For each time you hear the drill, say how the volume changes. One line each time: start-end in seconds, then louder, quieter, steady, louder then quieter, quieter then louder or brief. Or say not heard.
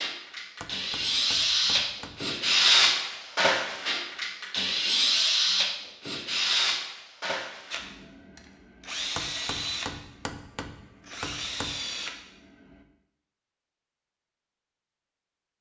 0.0-12.8 quieter.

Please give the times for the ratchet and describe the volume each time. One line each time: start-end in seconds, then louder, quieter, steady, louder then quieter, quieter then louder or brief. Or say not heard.
not heard.